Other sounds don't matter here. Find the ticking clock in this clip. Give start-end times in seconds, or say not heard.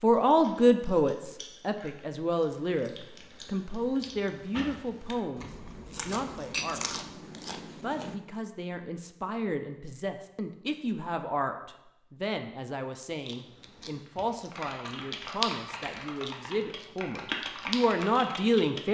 not heard.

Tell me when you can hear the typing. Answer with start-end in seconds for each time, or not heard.
14.1-18.8.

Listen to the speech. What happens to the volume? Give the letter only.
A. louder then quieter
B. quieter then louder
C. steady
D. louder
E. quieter
B.